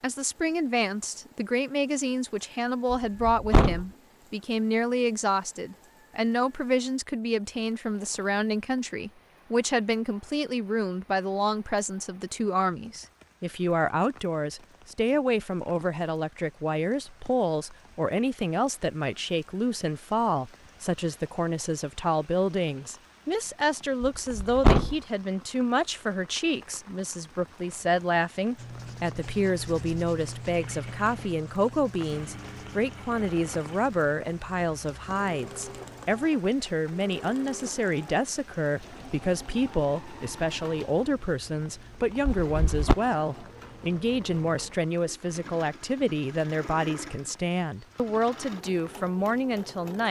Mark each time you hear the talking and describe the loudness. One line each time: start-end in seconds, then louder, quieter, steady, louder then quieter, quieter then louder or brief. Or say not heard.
0.0-50.0 steady.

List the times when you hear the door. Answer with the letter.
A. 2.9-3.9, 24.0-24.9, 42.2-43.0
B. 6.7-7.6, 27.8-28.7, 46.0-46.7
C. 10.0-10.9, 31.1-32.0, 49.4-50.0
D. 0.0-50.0
A.